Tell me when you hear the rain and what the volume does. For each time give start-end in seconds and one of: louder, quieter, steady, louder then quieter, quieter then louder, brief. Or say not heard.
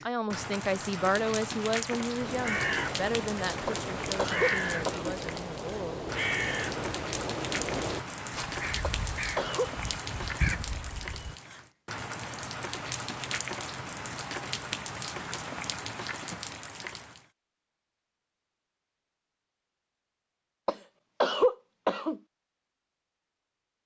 0.0-17.2 steady.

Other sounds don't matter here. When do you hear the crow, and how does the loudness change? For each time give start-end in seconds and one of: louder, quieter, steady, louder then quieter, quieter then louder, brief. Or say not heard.
2.2-11.3 steady.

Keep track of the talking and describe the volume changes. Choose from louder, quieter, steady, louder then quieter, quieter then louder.
quieter.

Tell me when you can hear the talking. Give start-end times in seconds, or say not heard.
0.0-6.0.